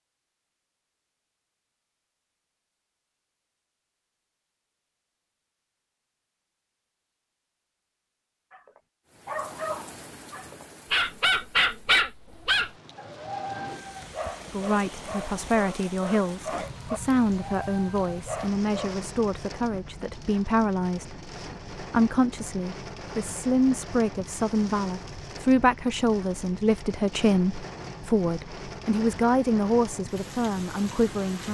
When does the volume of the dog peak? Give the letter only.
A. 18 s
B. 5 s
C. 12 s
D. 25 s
C.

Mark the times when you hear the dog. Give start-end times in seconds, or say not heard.
8.5-19.1.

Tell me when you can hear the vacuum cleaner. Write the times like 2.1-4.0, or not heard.
not heard.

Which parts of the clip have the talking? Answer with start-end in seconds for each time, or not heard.
14.5-31.5.